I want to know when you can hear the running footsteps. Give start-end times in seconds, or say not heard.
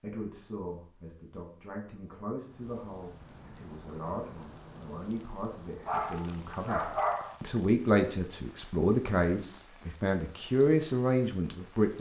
not heard.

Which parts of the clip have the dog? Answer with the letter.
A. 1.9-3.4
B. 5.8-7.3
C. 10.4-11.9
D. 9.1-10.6
B.